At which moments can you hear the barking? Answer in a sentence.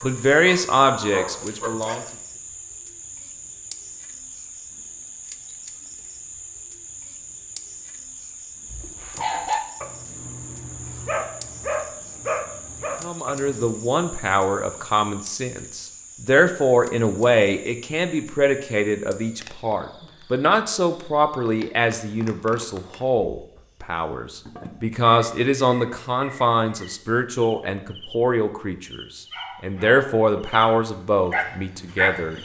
The barking can be heard from 0.0 to 2.1 s, from 8.7 to 13.7 s and from 29.3 to 32.2 s.